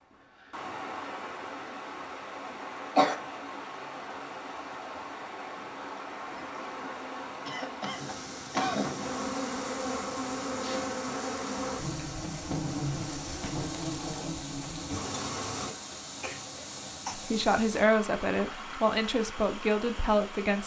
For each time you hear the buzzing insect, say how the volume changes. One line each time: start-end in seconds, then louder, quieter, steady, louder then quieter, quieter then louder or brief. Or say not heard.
6.5-15.8 louder.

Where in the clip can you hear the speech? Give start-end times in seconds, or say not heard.
17.1-20.6.